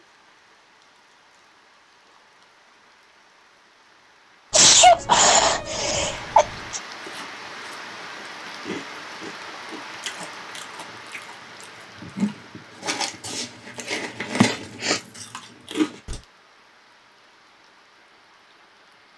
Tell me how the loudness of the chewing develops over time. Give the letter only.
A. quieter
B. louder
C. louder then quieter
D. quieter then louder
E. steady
B.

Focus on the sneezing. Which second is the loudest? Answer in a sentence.
The loudest moment of the sneezing is at 5 seconds.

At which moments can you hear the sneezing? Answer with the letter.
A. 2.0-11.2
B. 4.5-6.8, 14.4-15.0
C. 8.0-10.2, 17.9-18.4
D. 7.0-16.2
B.